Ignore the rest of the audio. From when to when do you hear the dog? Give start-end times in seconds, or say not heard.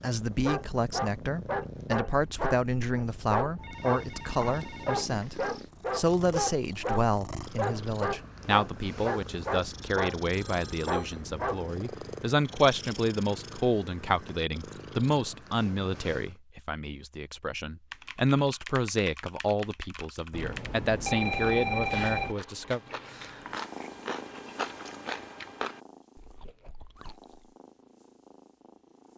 0.3-11.7.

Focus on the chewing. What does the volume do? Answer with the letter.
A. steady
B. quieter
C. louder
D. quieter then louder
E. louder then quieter
E.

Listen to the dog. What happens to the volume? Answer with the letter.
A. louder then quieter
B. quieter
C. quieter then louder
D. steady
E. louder
D.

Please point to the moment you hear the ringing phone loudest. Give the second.
22 s.